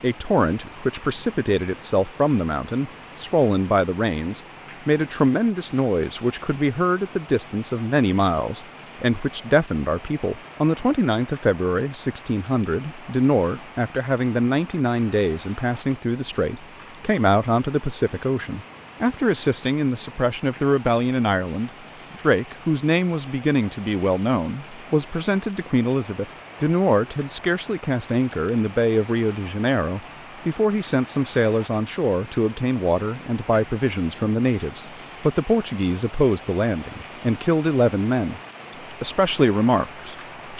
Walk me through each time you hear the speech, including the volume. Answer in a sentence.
You can hear the speech from 0.0 to 40.5 s, at a steady volume.